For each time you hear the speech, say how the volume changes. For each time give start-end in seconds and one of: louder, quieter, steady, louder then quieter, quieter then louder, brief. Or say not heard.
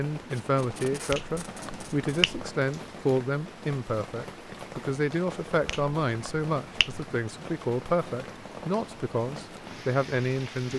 0.0-10.7 steady.